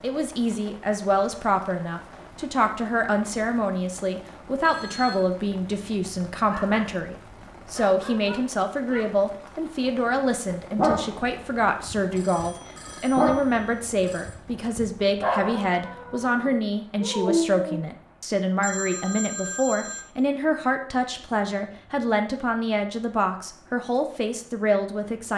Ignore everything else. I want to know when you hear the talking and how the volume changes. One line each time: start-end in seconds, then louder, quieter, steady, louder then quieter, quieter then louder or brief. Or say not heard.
0.0-25.3 steady.